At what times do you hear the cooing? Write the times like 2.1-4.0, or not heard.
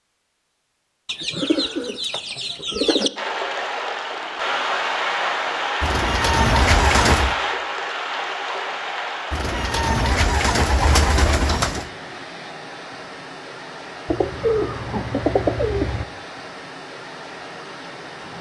1.1-3.1, 5.8-7.3, 9.3-11.8, 14.1-16.1.